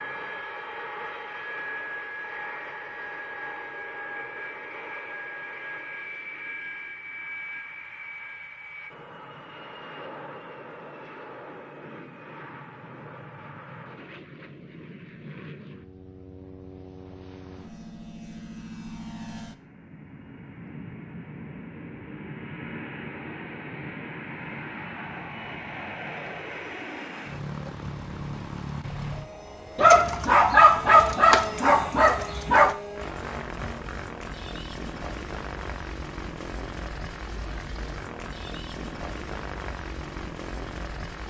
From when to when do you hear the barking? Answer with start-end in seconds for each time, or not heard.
29.8-32.8.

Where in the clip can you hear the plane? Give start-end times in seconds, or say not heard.
0.0-41.2.